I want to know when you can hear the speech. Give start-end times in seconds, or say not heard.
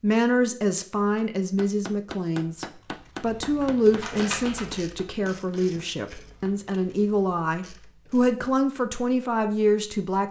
0.0-10.2.